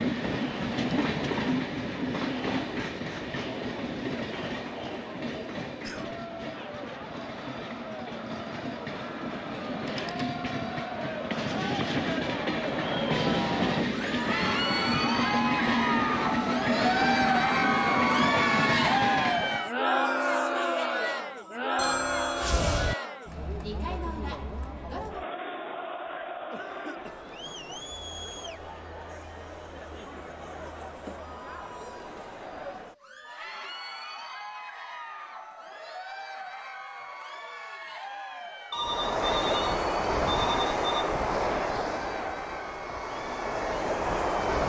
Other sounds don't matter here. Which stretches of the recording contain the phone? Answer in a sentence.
You can hear the phone from 9.8 to 10.3 s, from 21.8 to 22.9 s and from 38.7 to 41.1 s.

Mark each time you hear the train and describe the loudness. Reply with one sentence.
The train can be heard from 0.0 to 19.7 s, getting quieter then louder; and from 38.8 to 44.6 s, getting quieter then louder.